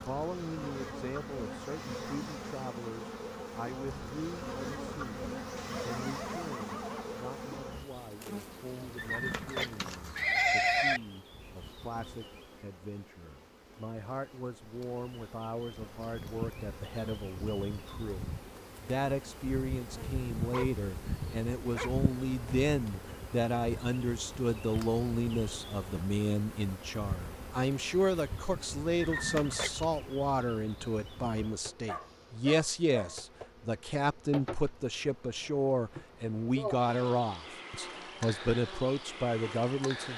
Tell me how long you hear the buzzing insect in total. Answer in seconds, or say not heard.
40 s.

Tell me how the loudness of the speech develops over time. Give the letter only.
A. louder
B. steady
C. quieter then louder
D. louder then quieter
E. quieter
A.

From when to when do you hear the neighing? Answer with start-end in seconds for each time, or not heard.
8.9-11.0, 29.0-29.9.